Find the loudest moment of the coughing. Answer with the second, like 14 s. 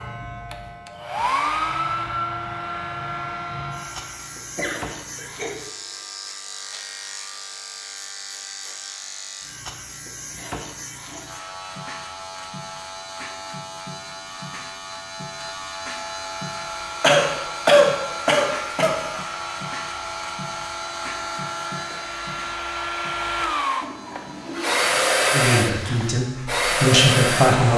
18 s.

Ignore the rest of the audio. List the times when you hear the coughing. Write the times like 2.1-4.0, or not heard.
4.5-5.5, 17.0-18.9.